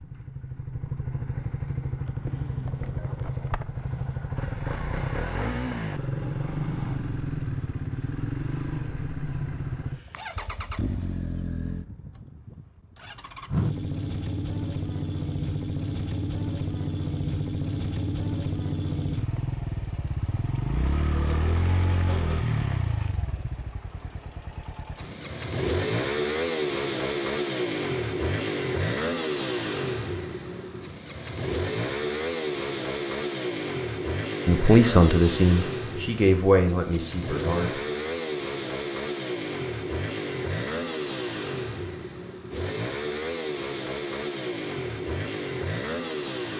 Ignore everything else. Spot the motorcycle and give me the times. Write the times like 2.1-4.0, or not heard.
0.0-46.5.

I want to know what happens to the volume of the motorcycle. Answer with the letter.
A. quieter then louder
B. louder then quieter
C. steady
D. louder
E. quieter
C.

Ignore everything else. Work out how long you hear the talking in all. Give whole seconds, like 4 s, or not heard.
3 s.